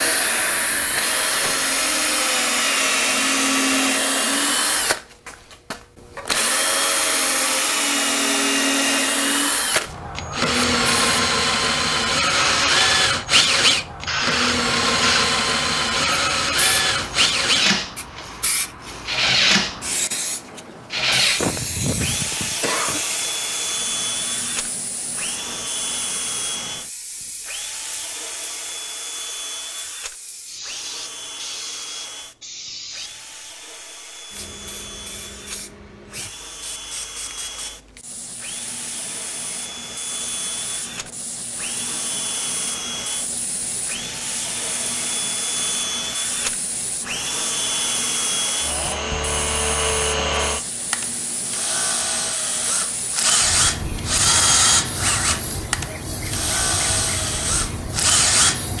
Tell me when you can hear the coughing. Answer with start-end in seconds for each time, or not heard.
21.4-23.0.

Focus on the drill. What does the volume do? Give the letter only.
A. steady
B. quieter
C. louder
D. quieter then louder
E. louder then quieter
D.